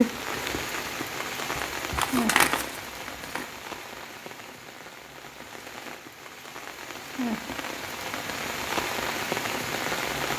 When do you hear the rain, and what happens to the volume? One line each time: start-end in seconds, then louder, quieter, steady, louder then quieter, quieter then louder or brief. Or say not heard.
0.0-10.3 quieter then louder.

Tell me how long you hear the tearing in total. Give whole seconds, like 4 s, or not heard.
2 s.